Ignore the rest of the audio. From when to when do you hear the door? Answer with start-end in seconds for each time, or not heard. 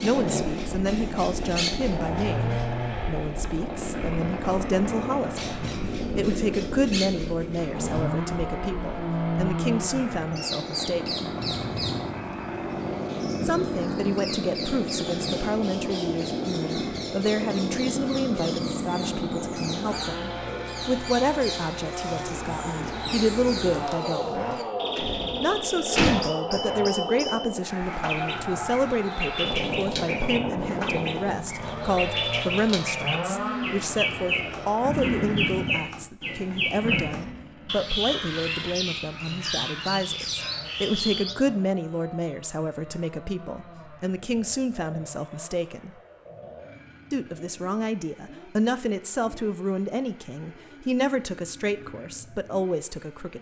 24.5-26.1.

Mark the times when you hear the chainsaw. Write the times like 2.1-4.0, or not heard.
0.0-53.3.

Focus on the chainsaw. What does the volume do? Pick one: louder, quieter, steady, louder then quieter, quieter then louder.
quieter.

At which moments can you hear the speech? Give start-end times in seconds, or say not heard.
0.0-11.2, 13.4-24.4, 25.4-45.9, 47.1-53.3.